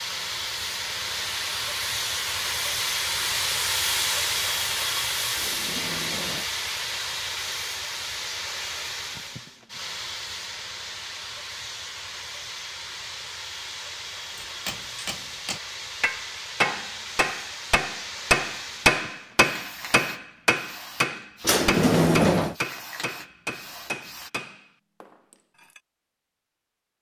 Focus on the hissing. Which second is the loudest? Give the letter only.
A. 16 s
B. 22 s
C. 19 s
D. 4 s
D.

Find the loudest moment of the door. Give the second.
22 s.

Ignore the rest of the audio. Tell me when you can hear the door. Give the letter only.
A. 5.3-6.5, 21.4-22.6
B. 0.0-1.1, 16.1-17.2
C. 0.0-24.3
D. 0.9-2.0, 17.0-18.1
A.